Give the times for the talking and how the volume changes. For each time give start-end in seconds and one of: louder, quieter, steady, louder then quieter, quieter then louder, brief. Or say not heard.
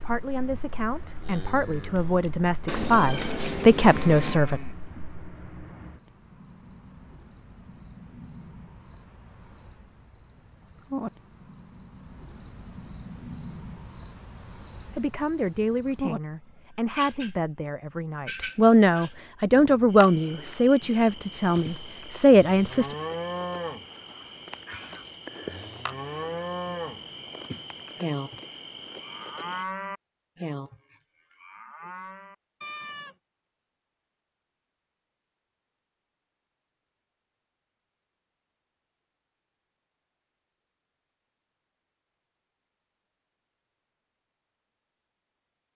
0.0-4.6 louder
14.9-22.9 louder.